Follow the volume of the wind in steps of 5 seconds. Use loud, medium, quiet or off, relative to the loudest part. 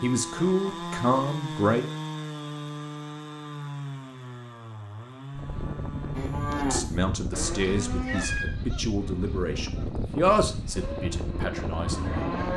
off, loud, loud.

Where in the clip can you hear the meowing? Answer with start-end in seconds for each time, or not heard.
7.3-8.6.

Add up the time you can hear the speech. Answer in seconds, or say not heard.
7 s.